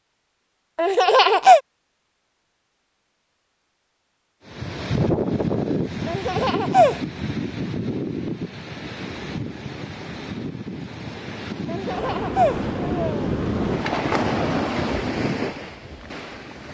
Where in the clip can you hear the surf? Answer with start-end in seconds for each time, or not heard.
4.5-16.7.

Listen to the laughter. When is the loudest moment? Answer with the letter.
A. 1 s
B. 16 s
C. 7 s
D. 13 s
A.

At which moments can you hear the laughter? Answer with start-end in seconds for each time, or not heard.
0.8-1.6, 6.0-7.0, 11.7-13.3.